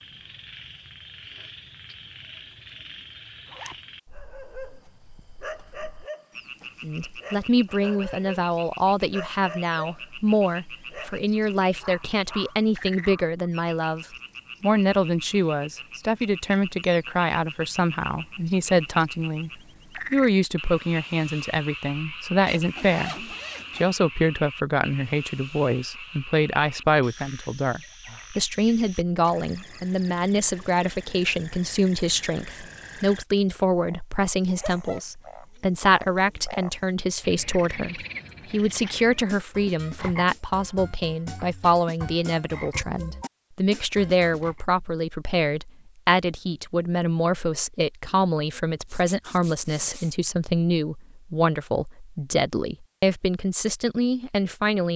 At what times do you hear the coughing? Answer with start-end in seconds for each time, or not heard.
not heard.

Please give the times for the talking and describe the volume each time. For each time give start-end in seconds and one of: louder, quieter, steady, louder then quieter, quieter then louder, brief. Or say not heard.
6.8-19.5 steady
20.1-54.9 steady.